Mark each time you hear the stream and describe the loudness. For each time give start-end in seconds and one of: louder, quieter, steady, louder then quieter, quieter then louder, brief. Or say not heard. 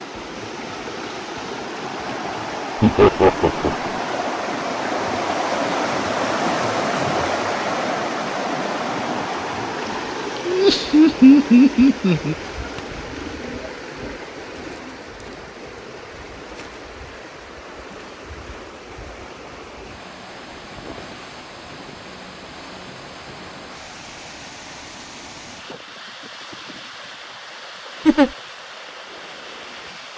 0.0-30.1 quieter.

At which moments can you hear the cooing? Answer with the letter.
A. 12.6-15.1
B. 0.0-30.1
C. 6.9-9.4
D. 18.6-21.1
A.